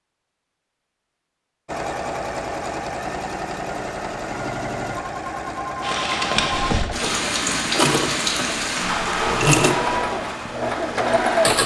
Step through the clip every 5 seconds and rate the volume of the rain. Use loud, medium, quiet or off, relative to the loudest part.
off, loud, medium.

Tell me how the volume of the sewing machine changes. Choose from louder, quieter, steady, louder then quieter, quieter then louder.
louder.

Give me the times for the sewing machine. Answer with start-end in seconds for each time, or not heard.
1.6-11.6.